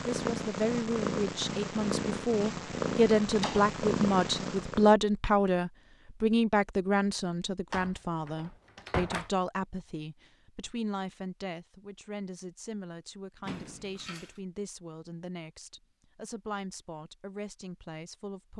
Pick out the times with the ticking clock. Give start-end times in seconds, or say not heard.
not heard.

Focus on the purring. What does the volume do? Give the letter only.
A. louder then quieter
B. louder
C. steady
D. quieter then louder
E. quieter
C.